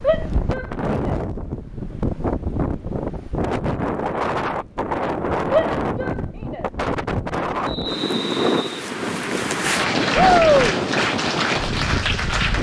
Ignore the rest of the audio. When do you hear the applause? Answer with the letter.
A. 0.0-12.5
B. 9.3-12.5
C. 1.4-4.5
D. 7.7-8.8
B.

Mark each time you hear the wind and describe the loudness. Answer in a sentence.
The wind can be heard from 0.0 to 12.5 s, at a steady volume.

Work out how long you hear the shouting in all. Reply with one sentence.
You can hear the shouting for 3 seconds altogether.